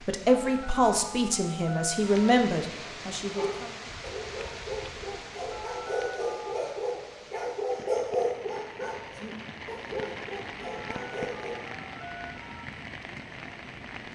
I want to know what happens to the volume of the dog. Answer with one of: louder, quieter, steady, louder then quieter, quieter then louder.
louder then quieter.